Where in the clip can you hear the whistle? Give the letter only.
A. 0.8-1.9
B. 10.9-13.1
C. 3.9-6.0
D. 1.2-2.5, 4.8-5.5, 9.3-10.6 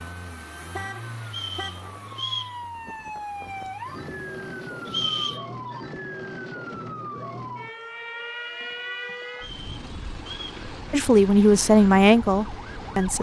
D.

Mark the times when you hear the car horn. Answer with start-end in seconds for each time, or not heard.
0.8-1.9.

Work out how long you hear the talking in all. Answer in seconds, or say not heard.
2 s.